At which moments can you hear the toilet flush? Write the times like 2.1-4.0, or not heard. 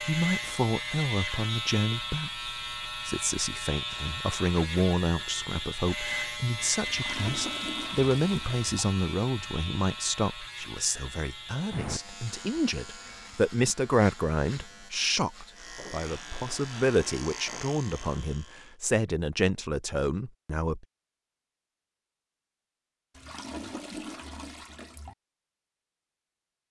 6.8-8.8, 23.1-25.1.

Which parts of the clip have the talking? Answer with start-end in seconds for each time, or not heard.
0.1-20.9.